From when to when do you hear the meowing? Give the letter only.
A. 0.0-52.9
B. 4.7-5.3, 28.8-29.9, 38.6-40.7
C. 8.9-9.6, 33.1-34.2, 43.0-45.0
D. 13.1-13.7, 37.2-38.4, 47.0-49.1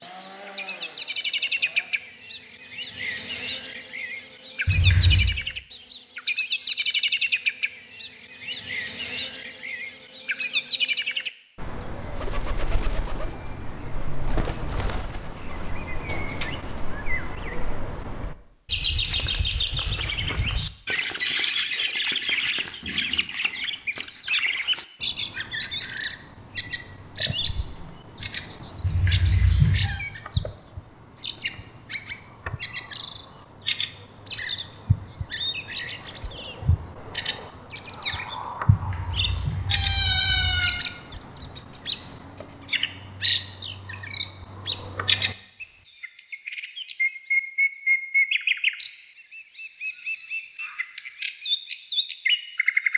B.